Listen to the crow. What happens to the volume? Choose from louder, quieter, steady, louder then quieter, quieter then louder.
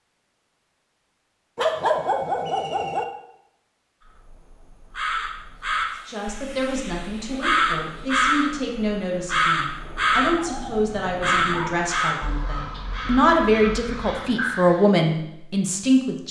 louder then quieter.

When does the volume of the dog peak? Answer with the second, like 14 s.
2 s.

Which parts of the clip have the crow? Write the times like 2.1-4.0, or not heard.
4.0-14.8.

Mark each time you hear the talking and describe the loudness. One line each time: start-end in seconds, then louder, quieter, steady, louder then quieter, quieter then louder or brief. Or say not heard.
6.0-16.2 louder.